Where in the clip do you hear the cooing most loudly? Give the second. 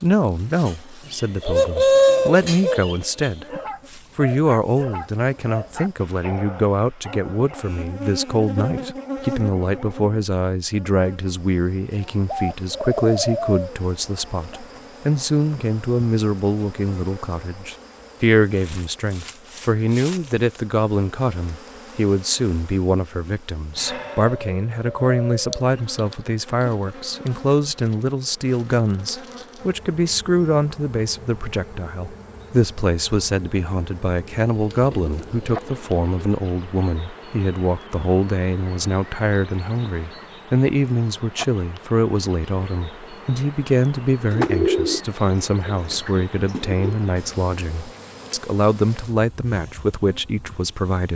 2 s.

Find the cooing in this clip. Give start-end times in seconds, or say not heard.
0.7-3.3, 11.9-14.4, 23.9-25.8, 34.5-36.2, 44.3-46.9.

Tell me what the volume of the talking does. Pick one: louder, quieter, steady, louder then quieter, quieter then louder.
steady.